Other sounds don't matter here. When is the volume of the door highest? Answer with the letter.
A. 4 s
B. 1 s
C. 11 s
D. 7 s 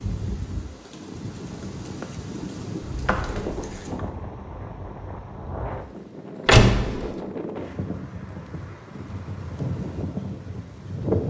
D.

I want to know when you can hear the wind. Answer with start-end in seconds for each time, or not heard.
0.0-11.2.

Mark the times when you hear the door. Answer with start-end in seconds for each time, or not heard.
2.8-4.0, 6.5-7.1.